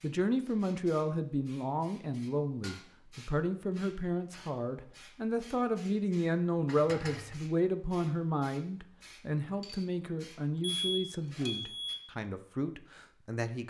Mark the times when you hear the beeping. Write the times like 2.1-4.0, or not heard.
10.8-12.0.